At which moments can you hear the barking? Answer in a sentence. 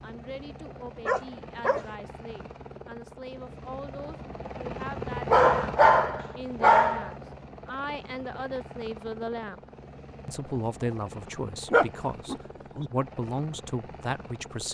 You can hear the barking from 1.1 to 1.9 s, from 5.2 to 7.1 s and from 11.7 to 12.9 s.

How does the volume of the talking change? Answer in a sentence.
The volume of the talking goes up.